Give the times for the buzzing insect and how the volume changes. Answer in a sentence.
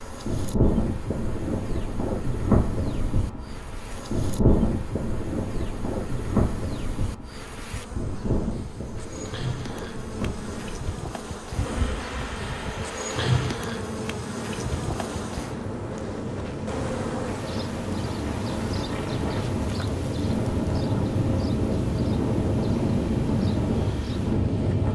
You can hear the buzzing insect from 0.0 to 24.8 s, getting louder then quieter.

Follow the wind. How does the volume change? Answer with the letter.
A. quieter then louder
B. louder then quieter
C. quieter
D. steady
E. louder
A.